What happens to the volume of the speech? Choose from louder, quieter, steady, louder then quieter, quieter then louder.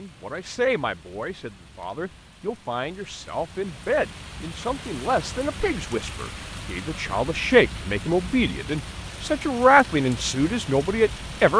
louder.